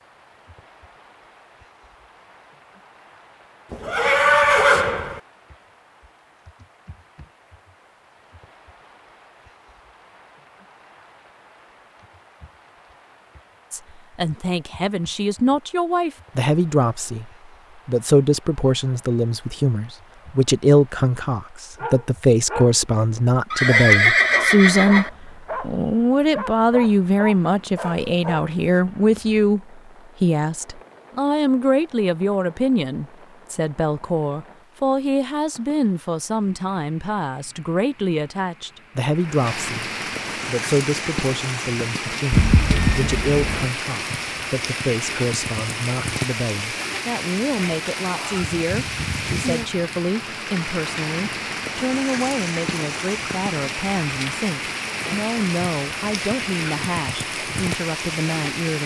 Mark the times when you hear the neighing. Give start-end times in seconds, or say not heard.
3.7-5.2, 23.5-25.1, 42.3-43.7.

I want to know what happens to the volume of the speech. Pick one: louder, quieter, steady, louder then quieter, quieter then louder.
quieter.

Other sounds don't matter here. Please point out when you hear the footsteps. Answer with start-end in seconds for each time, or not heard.
not heard.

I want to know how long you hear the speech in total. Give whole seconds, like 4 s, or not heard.
45 s.